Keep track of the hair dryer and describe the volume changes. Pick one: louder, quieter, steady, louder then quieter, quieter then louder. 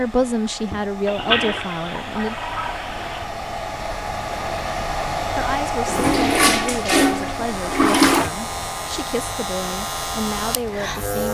louder then quieter.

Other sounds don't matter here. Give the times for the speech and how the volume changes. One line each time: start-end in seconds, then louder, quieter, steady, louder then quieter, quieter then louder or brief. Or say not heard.
0.0-2.4 brief
5.3-11.3 steady.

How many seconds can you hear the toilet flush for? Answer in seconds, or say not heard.
5 s.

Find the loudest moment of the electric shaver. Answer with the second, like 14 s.
11 s.